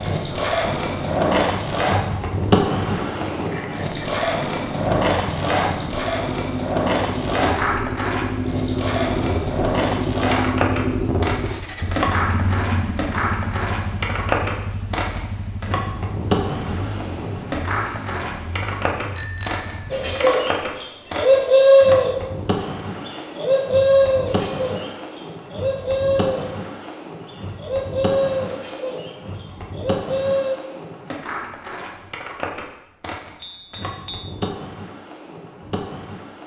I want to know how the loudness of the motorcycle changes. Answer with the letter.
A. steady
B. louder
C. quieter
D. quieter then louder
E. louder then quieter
E.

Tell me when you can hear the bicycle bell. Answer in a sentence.
You can hear the bicycle bell from 3.5 to 4.2 s, from 19.1 to 19.8 s and from 33.4 to 34.5 s.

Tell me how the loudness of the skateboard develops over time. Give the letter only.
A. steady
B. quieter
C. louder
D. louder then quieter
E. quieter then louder
B.